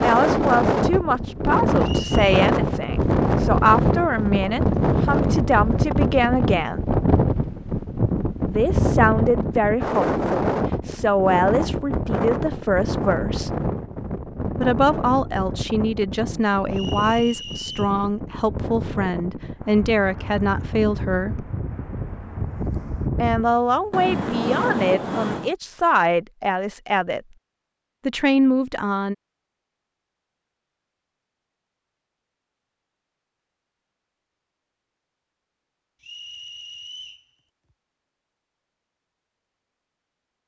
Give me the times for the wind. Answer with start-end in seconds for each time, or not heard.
0.0-25.6.